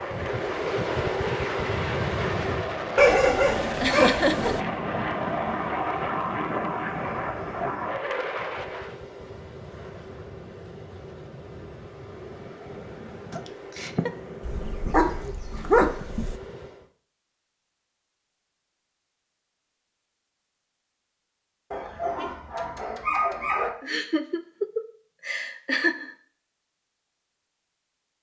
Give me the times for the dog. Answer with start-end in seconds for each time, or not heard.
3.0-4.6, 14.4-16.4, 21.7-23.7.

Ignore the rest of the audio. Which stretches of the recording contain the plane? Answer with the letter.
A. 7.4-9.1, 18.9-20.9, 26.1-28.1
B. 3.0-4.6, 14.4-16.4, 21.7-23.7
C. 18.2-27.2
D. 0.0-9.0
D.